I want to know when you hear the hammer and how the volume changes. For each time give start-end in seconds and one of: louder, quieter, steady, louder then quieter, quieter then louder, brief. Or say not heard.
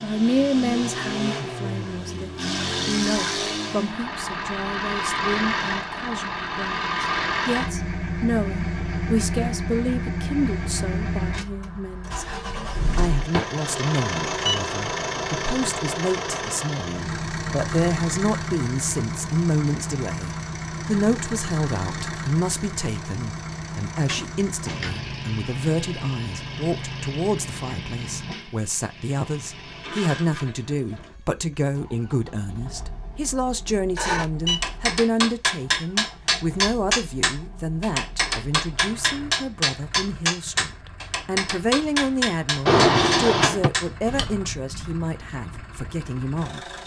34.0-44.4 steady.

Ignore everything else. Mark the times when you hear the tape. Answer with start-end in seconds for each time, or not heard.
not heard.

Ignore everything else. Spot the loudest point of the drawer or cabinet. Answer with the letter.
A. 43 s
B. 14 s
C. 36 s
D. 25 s
A.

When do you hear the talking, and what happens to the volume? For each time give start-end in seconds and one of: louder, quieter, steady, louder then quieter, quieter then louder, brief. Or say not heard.
0.0-46.6 steady.